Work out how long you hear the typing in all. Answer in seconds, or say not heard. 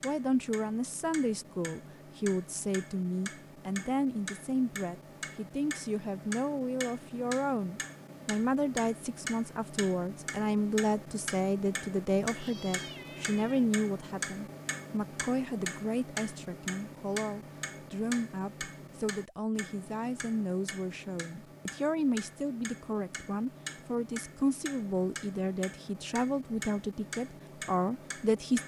not heard.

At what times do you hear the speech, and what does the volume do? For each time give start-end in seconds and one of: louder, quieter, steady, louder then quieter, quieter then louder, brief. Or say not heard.
0.0-28.6 steady.